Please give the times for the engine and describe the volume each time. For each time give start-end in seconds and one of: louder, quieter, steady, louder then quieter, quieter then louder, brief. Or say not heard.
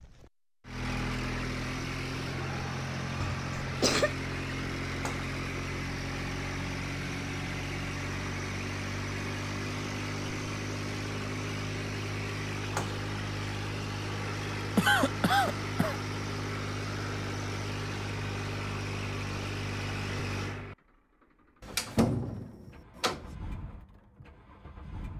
0.0-25.1 quieter.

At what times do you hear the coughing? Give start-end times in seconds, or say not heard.
3.2-4.1, 14.8-15.9.